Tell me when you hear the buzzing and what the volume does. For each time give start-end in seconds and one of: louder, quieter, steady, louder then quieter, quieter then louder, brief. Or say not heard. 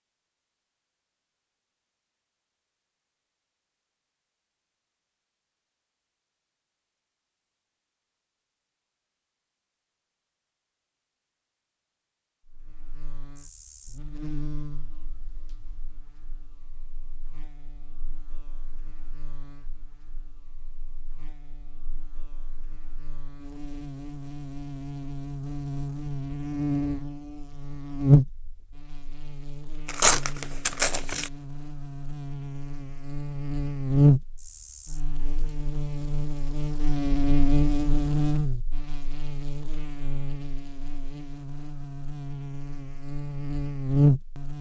12.4-44.5 louder.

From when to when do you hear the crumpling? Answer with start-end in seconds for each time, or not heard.
29.9-31.3.